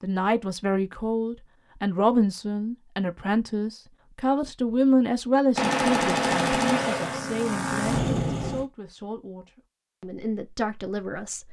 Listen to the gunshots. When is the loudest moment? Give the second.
6 s.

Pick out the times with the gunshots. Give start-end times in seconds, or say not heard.
5.5-7.2.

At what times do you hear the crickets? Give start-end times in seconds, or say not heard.
not heard.